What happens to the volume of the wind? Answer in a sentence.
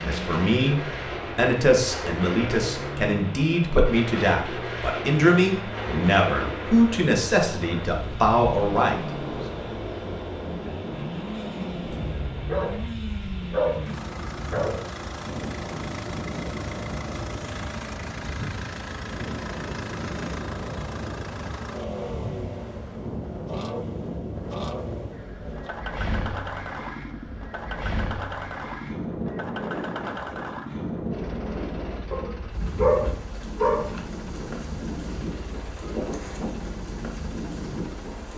The volume of the wind stays about the same.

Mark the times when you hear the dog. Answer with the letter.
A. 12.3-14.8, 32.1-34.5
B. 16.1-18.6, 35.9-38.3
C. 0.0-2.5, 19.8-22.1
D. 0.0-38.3
A.